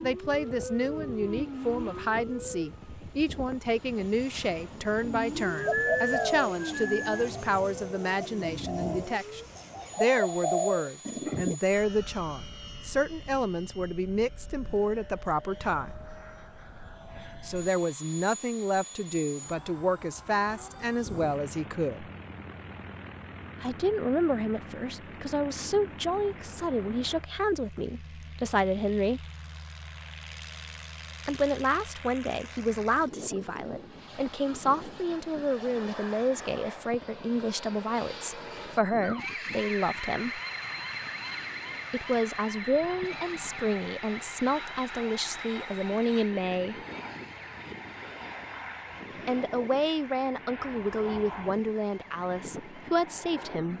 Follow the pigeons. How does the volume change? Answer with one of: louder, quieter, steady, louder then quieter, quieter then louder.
quieter then louder.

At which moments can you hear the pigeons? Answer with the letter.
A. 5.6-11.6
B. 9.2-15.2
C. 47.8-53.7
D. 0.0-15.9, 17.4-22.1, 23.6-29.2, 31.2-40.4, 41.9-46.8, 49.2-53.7
A.